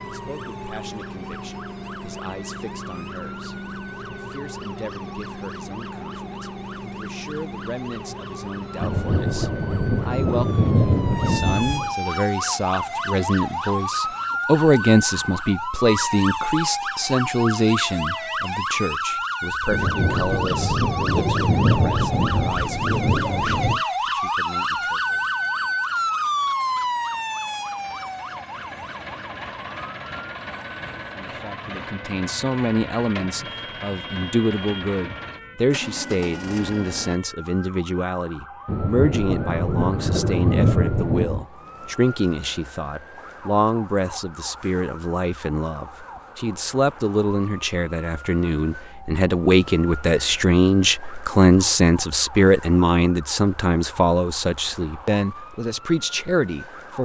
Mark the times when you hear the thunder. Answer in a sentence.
The thunder can be heard from 8.8 to 11.9 s, from 19.7 to 23.8 s and from 38.6 to 41.5 s.